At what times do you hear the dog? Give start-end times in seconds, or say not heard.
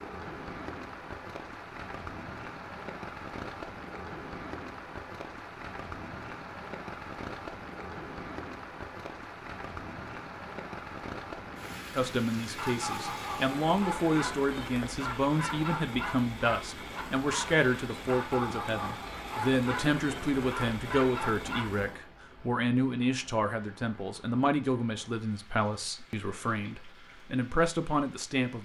12.4-21.7.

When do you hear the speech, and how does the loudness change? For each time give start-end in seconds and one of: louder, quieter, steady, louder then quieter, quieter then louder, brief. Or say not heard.
11.9-28.6 steady.